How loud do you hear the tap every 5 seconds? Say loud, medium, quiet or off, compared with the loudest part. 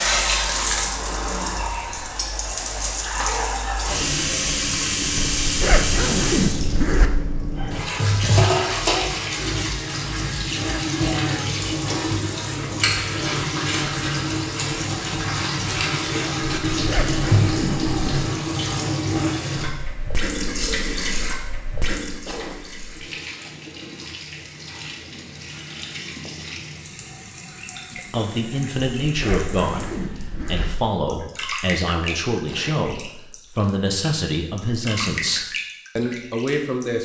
loud, loud, loud, loud, medium, quiet, medium, medium.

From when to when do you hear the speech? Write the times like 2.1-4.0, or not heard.
27.9-37.0.